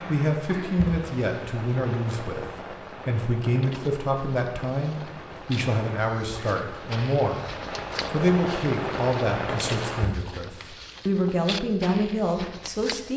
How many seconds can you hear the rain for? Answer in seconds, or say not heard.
10 s.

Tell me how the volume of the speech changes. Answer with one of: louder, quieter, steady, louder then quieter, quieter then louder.
steady.